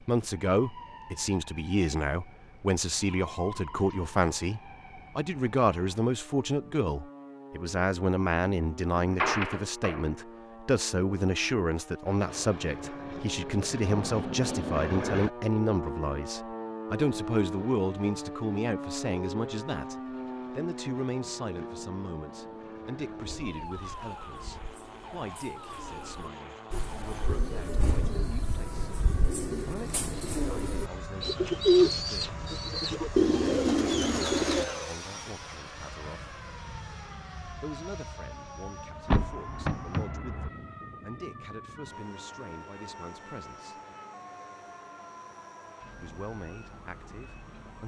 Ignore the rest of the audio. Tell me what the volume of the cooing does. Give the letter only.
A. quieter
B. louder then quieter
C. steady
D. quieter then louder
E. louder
E.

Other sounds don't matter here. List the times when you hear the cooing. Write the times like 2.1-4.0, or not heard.
23.4-34.6.